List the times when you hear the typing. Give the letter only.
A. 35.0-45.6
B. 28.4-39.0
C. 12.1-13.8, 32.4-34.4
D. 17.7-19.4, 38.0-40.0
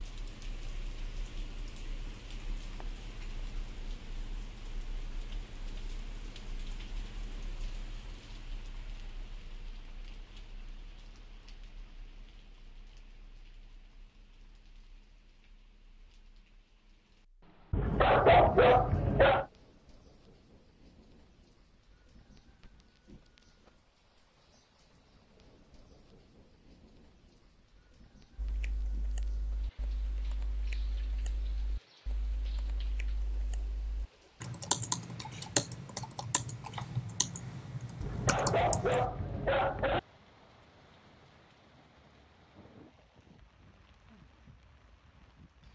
B.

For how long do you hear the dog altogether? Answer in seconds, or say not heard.
4 s.